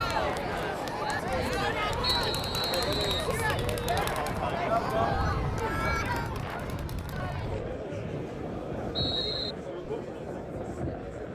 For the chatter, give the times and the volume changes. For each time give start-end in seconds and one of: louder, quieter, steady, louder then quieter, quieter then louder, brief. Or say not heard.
0.0-11.2 quieter.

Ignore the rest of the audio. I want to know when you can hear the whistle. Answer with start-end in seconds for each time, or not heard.
2.0-3.3, 7.9-9.6.